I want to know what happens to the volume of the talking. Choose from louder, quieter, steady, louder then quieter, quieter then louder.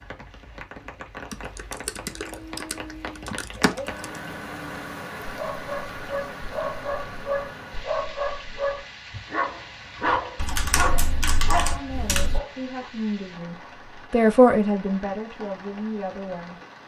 louder then quieter.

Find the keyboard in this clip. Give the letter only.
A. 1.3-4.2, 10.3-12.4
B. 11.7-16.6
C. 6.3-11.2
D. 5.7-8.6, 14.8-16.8
A.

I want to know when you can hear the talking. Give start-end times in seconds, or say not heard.
11.7-16.6.